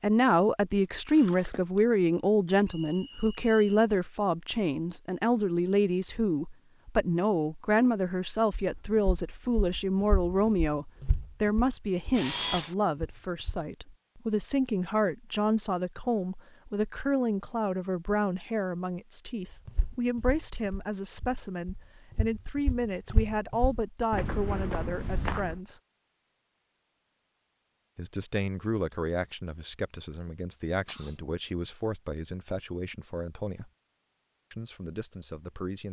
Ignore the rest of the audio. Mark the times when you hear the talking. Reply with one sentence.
The talking can be heard from 0.0 to 25.8 s, from 27.9 to 33.7 s and from 34.5 to 35.8 s.